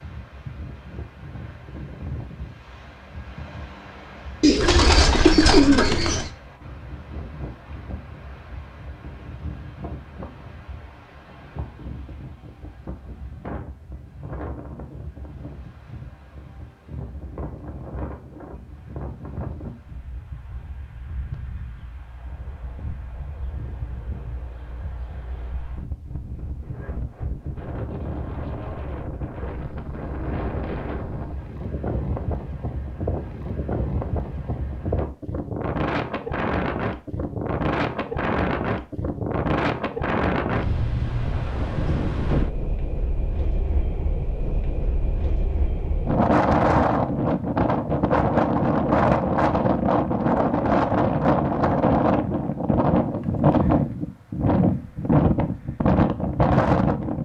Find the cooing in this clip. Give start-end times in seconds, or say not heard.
4.4-6.3.